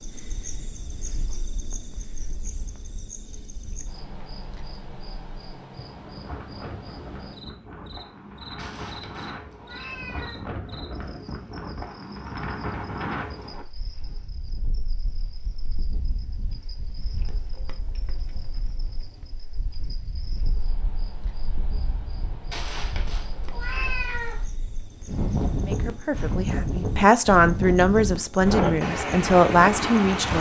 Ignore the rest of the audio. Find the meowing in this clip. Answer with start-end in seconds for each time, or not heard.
8.6-10.4, 22.5-24.4.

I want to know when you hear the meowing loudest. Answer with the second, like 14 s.
24 s.